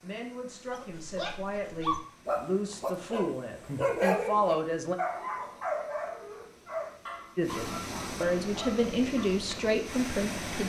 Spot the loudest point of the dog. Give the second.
4 s.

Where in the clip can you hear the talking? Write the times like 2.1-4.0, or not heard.
0.0-5.0, 7.3-10.6.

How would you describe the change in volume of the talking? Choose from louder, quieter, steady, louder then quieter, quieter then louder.
louder.